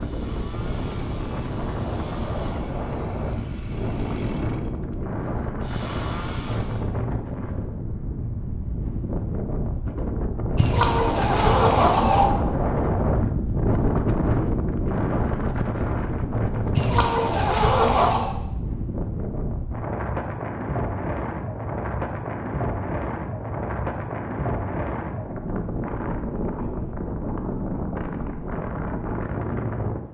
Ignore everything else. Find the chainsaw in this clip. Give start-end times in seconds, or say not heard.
0.0-7.0.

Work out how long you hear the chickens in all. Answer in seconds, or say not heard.
3 s.